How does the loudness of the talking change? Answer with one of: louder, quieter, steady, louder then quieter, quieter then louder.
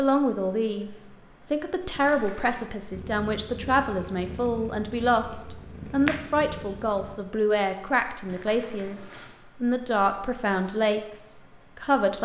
steady.